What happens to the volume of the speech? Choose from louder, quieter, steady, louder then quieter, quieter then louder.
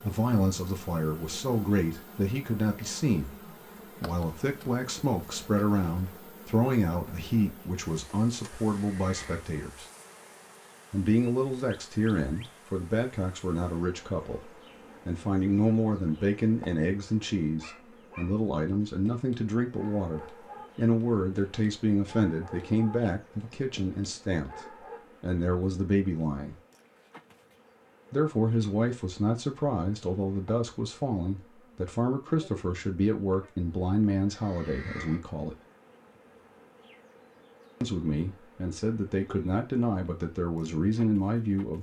steady.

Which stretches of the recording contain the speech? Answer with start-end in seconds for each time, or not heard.
0.0-9.8, 10.9-26.6, 28.1-35.5, 37.8-41.7.